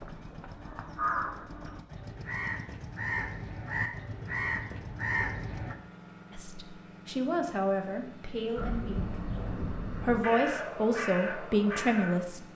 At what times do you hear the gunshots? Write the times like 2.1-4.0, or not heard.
not heard.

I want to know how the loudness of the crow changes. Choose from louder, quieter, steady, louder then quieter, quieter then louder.
steady.